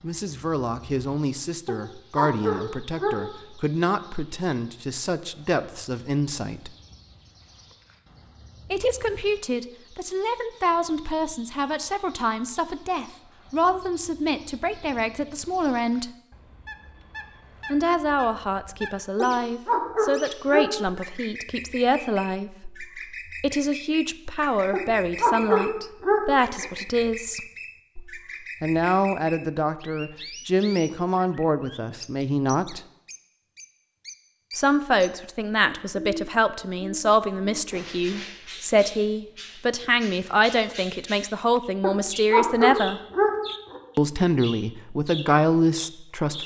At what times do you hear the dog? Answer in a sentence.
You can hear the dog from 1.6 to 3.1 s, from 19.2 to 20.7 s, from 24.7 to 26.7 s and from 41.8 to 43.8 s.